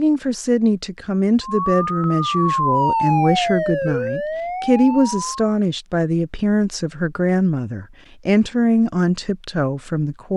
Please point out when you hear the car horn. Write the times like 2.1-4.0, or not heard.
not heard.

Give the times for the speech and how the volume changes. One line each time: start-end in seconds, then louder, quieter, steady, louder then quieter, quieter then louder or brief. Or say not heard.
0.0-10.3 steady.